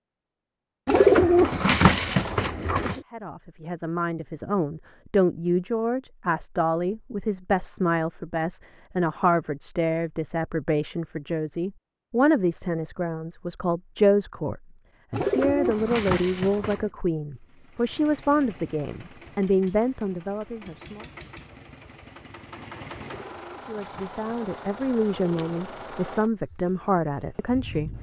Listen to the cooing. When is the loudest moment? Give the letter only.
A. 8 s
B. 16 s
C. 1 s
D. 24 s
C.